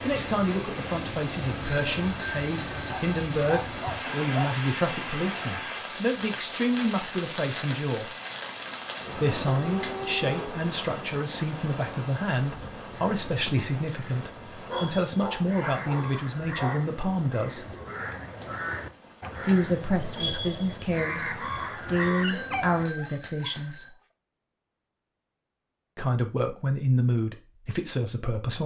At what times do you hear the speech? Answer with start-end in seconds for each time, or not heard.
0.1-8.1, 9.2-17.8, 19.4-23.9, 25.9-28.6.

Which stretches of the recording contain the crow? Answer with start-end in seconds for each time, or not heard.
12.8-22.9.